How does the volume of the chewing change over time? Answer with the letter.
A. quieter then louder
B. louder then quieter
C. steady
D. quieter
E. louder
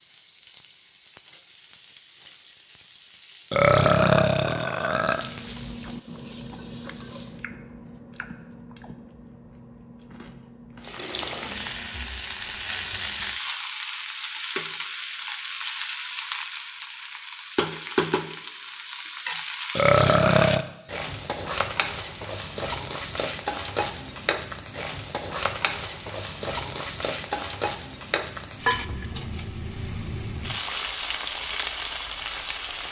D.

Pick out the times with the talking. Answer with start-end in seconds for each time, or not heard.
not heard.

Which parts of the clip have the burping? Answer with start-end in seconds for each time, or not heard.
3.5-5.2, 19.8-20.6.